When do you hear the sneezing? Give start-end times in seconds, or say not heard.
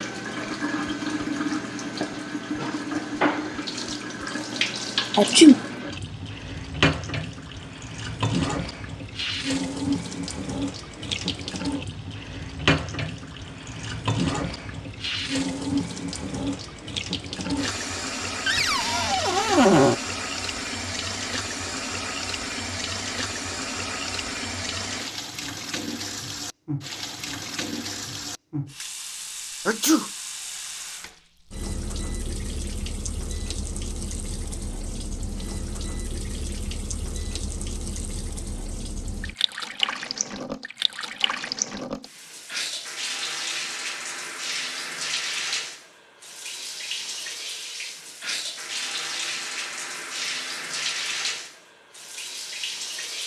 5.2-5.6, 29.6-30.1.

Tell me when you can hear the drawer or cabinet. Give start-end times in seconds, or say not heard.
18.4-19.9.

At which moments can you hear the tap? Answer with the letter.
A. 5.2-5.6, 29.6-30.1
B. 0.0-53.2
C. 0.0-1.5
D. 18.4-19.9
B.